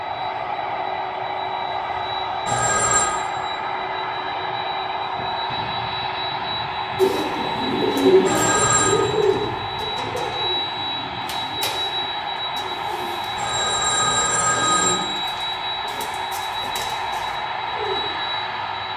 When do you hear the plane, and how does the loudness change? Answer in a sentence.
The plane can be heard from 0.0 to 18.9 s, at a steady volume.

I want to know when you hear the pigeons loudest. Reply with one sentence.
The loudest moment of the pigeons is at 8 seconds.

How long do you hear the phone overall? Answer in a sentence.
The phone can be heard for 3 seconds in total.